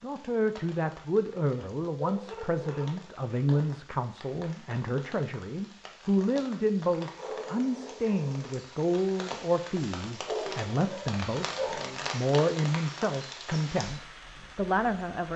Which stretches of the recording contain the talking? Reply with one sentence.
You can hear the talking from 0.0 to 15.3 s.